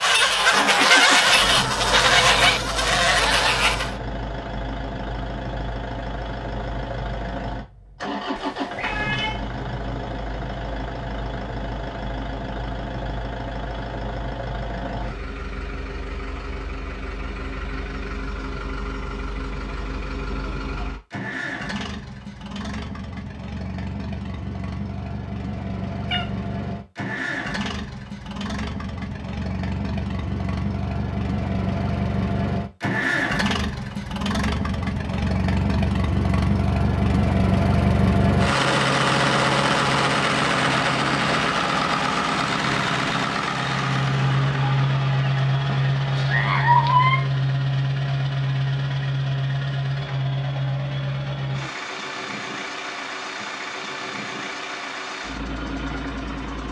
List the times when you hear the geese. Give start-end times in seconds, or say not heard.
0.0-4.0.